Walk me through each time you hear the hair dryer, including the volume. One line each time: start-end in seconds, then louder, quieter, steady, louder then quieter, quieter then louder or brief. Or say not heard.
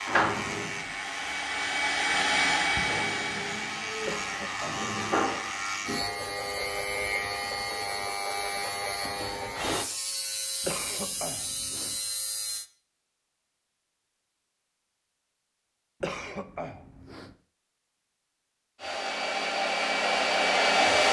0.0-5.8 louder then quieter
18.8-21.0 brief.